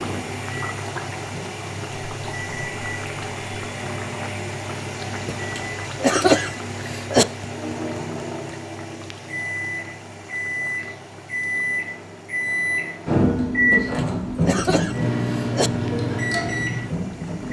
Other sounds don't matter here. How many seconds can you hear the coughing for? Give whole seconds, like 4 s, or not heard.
4 s.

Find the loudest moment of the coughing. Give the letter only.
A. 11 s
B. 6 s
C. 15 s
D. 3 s
B.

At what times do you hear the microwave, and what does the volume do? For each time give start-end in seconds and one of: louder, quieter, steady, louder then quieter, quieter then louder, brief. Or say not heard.
0.0-17.4 louder.